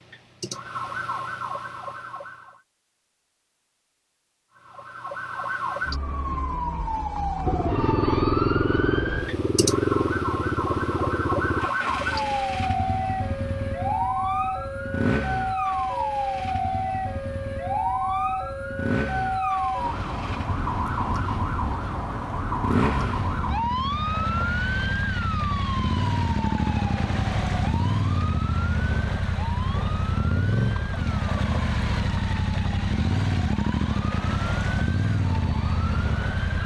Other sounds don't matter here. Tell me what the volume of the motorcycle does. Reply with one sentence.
The loudness of the motorcycle goes down, then up.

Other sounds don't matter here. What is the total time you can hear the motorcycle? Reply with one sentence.
You can hear the motorcycle for 29 seconds altogether.